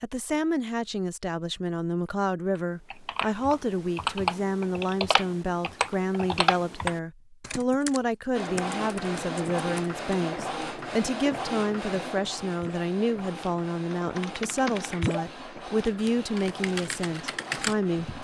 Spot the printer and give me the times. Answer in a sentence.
The printer can be heard from 8.3 to 18.1 s.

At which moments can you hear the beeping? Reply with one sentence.
You can't hear the beeping here.